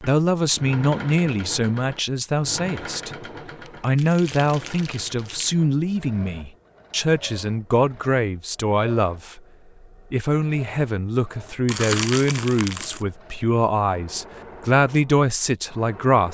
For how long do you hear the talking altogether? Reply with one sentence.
You can hear the talking for 15 seconds altogether.